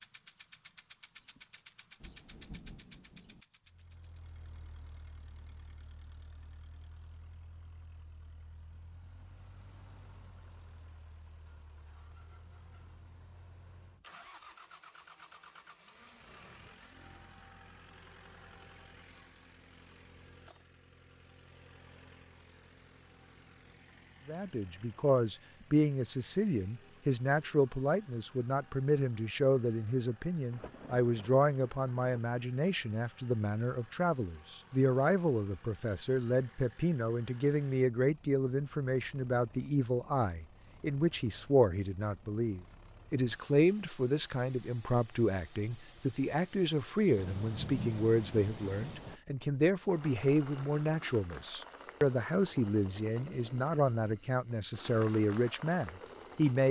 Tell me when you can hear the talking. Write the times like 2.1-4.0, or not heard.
24.2-56.6.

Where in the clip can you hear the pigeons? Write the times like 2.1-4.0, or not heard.
not heard.